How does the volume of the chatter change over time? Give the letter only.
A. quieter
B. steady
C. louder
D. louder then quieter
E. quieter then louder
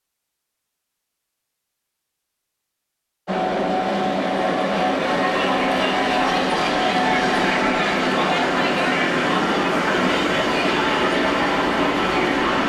B.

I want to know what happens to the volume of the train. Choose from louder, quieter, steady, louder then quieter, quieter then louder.
steady.